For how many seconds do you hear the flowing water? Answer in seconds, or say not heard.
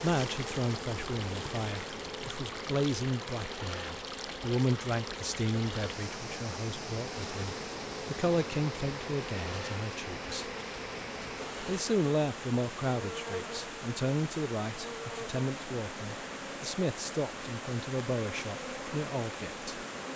20 s.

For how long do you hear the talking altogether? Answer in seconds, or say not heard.
19 s.